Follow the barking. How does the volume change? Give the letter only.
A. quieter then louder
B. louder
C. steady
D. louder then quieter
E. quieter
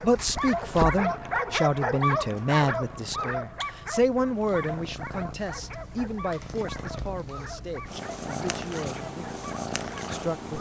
E.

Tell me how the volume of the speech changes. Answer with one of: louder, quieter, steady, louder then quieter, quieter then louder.
quieter.